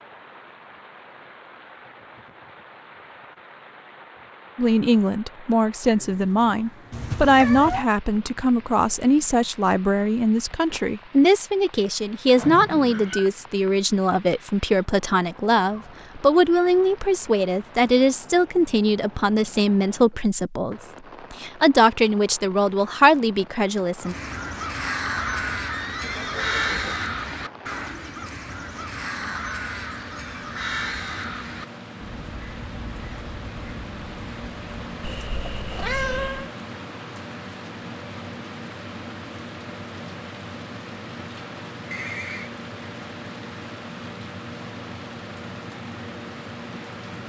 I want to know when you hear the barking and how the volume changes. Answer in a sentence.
The barking can't be heard in this clip.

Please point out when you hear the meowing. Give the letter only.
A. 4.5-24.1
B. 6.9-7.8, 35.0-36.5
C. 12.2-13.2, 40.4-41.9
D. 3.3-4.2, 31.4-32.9
B.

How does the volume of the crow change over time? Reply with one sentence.
The loudness of the crow goes down.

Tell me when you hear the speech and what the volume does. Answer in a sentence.
You can hear the speech from 4.5 to 24.1 s, at a steady volume.